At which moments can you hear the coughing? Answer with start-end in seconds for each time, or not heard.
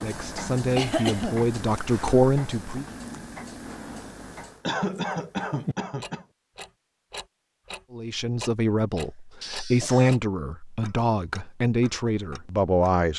0.8-1.4, 4.7-6.2, 9.4-10.2.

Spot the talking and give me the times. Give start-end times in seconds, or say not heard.
0.0-2.9, 7.9-13.1.